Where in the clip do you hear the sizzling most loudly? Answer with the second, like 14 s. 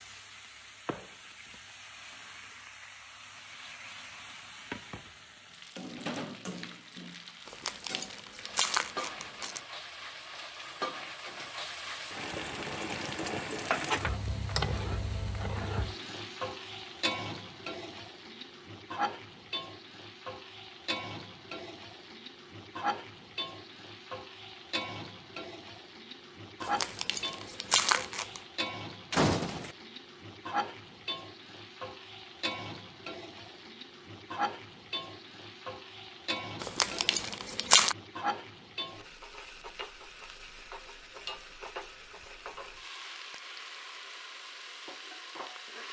14 s.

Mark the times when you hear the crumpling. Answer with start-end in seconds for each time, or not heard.
7.5-9.6, 26.6-28.4, 36.6-38.0.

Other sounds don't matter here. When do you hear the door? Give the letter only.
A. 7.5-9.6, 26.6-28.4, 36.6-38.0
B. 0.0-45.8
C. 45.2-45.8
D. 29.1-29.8
D.